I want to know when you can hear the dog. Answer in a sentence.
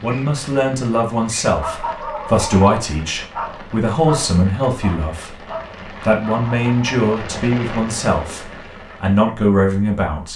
You can hear the dog from 1.6 to 7.0 s.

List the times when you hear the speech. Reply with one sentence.
The speech can be heard from 0.0 to 10.3 s.